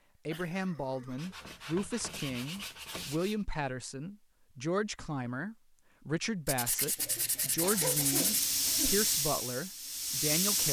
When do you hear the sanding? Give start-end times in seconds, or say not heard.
1.1-3.4, 6.5-8.4.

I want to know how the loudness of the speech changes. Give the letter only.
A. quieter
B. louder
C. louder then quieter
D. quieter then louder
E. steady
E.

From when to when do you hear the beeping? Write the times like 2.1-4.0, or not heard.
not heard.